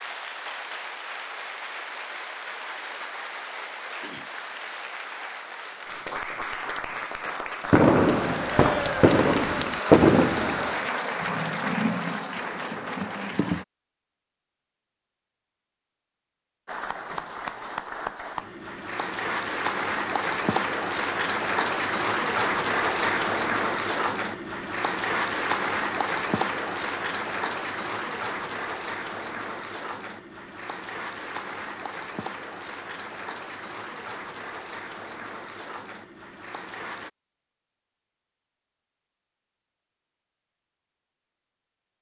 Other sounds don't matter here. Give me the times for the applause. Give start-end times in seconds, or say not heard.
0.0-13.7, 16.6-37.1.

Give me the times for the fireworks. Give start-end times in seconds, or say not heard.
7.7-10.7.